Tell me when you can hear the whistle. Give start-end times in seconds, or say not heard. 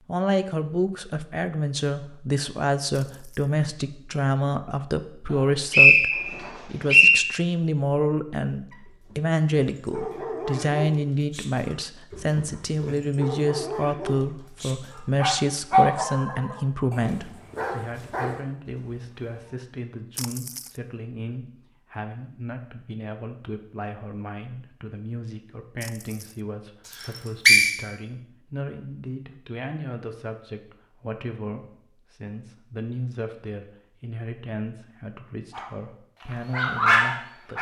5.3-7.2, 27.0-27.7.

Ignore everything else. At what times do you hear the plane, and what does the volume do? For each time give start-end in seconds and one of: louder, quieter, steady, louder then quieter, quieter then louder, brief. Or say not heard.
not heard.